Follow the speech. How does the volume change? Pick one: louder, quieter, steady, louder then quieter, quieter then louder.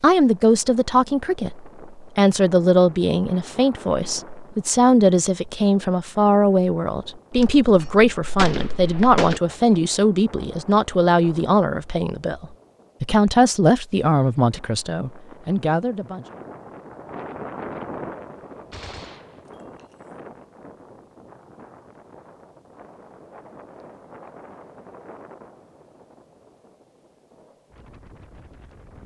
steady.